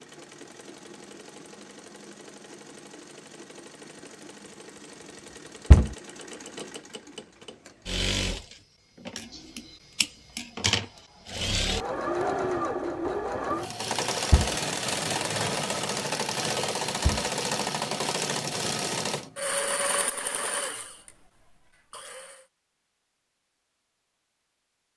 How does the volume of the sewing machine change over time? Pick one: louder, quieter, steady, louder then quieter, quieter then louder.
louder.